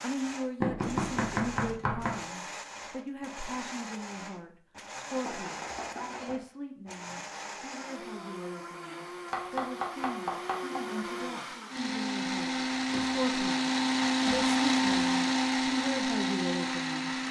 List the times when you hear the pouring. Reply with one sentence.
The pouring can't be heard in this clip.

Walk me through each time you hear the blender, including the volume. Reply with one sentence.
The blender can be heard from 0.0 to 17.2 s, getting louder.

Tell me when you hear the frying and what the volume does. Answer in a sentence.
The frying can't be heard in this clip.